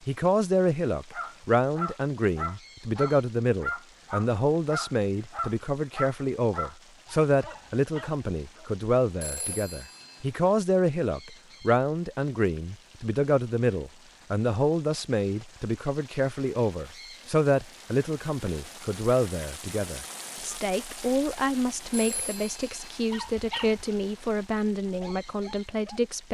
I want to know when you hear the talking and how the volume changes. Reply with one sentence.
The talking can be heard from 0.1 to 26.2 s, at a steady volume.